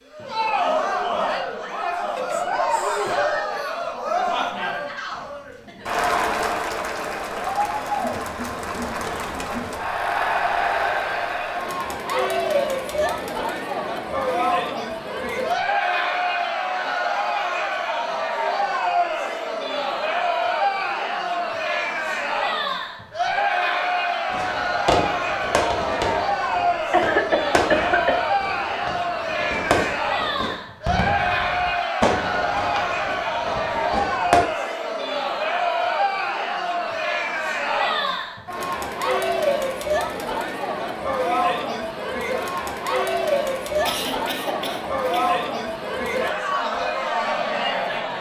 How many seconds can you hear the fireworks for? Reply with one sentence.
The fireworks can be heard for 10 seconds in total.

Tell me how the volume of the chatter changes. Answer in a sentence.
The loudness of the chatter stays about the same.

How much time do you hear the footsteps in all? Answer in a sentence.
You can't hear the footsteps here.